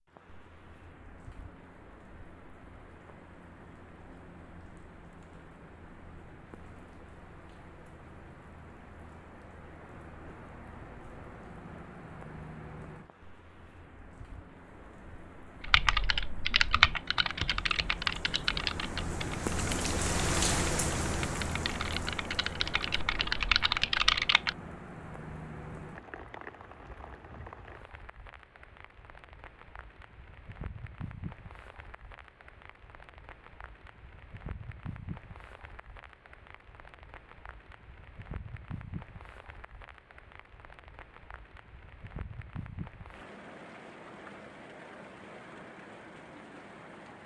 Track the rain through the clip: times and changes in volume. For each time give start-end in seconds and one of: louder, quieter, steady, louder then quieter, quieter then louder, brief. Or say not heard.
0.1-47.2 louder then quieter.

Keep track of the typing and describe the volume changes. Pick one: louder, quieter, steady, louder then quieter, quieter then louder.
quieter then louder.